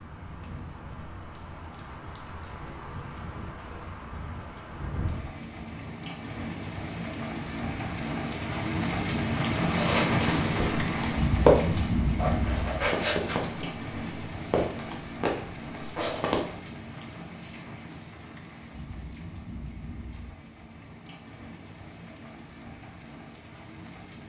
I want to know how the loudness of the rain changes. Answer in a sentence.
The volume of the rain goes up, then down.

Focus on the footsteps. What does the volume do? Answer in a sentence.
The loudness of the footsteps goes up, then down.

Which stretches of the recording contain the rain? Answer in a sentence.
The rain can be heard from 0.0 to 24.2 s.